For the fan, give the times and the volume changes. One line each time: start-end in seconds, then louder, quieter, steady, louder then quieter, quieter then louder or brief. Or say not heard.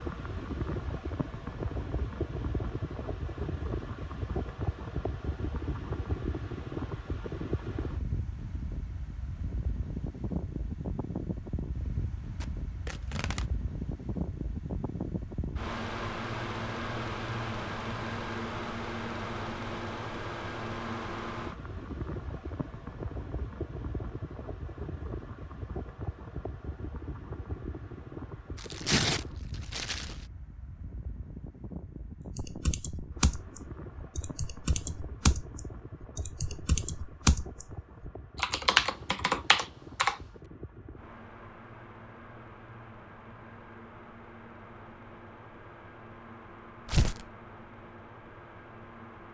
0.0-49.3 quieter.